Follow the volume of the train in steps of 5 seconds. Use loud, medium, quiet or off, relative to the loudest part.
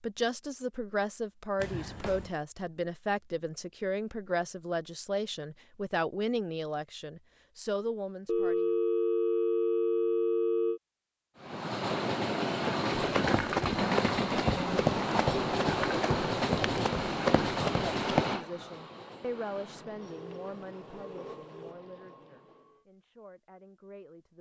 off, off, loud, loud, quiet.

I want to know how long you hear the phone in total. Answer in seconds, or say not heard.
5 s.